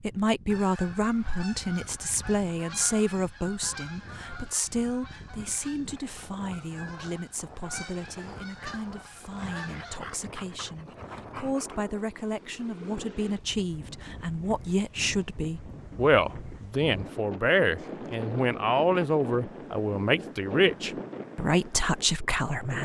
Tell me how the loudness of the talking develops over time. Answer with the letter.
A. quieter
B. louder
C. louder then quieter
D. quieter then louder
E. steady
D.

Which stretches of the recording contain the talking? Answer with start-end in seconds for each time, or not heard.
0.0-22.8.